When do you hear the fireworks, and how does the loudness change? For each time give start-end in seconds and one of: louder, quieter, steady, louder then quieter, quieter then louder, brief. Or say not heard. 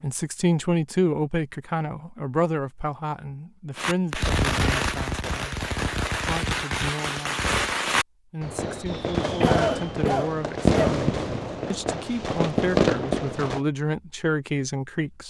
3.8-13.6 steady.